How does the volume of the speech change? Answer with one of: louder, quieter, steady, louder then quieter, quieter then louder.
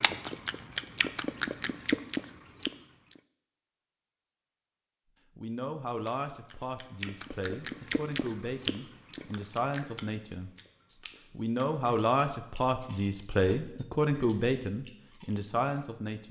louder.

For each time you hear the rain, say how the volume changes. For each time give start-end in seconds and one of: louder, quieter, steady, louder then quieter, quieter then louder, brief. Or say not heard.
not heard.